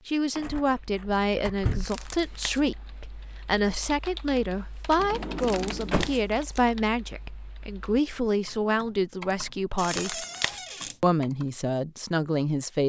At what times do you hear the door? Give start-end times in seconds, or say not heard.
0.3-1.9, 5.0-6.2, 9.8-11.0.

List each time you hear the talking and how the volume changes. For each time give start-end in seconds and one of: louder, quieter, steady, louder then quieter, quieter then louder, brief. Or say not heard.
0.1-10.2 steady
11.0-12.8 brief.